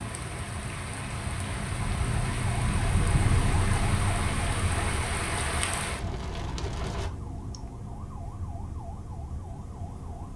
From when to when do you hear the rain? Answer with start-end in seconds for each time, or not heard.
0.0-7.1.